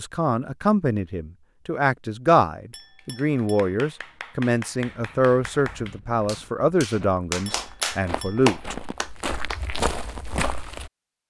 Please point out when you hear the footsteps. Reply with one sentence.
The footsteps can be heard from 4.9 to 10.9 s.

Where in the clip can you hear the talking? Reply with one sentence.
The talking can be heard from 0.0 to 8.8 s.